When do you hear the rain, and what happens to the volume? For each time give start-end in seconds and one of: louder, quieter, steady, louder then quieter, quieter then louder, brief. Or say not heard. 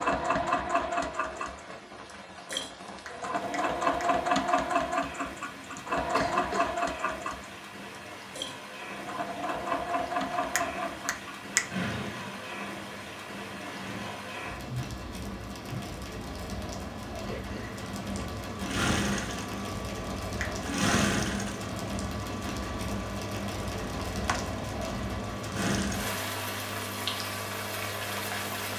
0.0-28.7 louder.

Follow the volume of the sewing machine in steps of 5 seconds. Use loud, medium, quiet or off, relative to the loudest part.
loud, loud, medium, medium, medium, medium.